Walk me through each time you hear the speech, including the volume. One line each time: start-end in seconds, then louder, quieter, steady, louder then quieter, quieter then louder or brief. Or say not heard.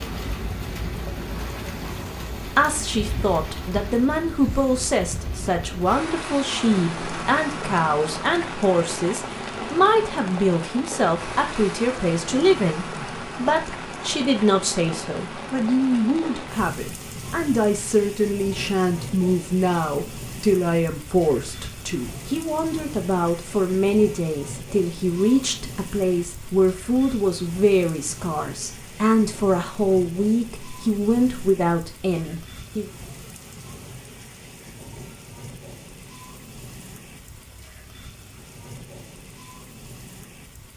2.5-32.9 steady.